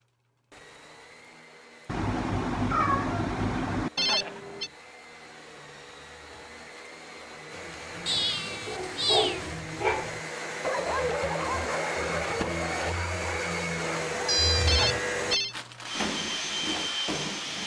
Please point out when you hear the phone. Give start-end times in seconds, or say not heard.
4.0-4.7, 14.7-15.6.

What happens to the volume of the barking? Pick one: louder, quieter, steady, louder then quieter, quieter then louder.
quieter.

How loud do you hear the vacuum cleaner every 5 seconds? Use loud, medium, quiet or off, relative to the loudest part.
quiet, medium, loud, loud.